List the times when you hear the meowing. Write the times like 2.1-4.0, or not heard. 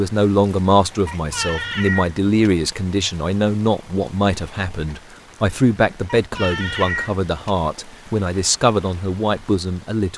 1.1-2.5, 6.0-7.5.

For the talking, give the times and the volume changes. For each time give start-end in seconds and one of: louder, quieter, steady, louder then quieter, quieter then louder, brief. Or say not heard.
0.0-10.1 steady.